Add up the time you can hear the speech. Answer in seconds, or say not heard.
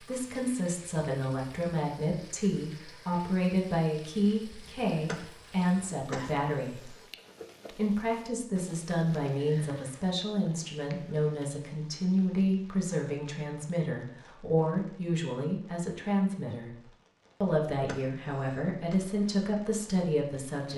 19 s.